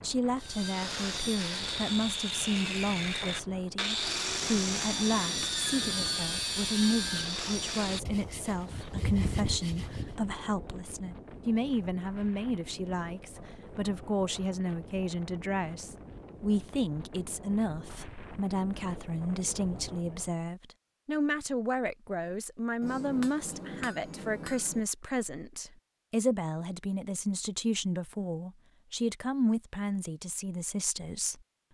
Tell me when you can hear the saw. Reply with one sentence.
You can hear the saw from 0.4 to 10.2 s.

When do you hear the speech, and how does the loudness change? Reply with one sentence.
You can hear the speech from 0.0 to 31.4 s, at a steady volume.